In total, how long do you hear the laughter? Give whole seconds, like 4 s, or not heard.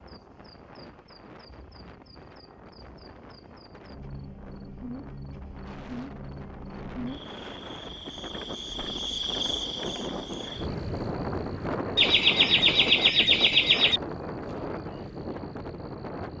2 s.